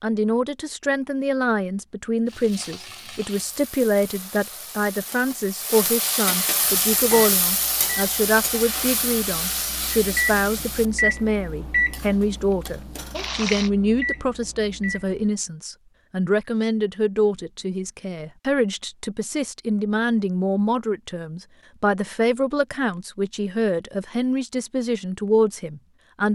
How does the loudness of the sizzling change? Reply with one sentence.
The loudness of the sizzling goes up, then down.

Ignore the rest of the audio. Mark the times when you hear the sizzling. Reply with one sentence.
You can hear the sizzling from 2.2 to 13.7 s.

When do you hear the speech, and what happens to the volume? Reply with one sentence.
You can hear the speech from 0.0 to 26.3 s, at a steady volume.